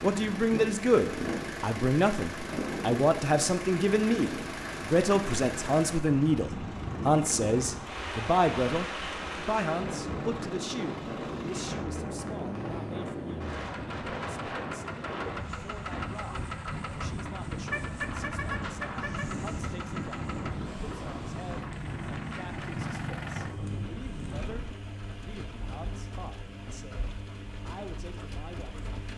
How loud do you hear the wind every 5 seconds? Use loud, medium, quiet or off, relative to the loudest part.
loud, loud, loud, loud, loud, off.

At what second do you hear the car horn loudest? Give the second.
18 s.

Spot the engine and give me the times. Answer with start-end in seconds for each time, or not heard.
0.0-29.1.